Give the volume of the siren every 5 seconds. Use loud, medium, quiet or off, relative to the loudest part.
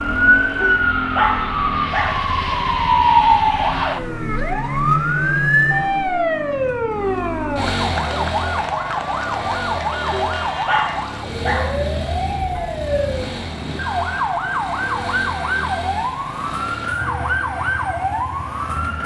loud, loud, medium, medium.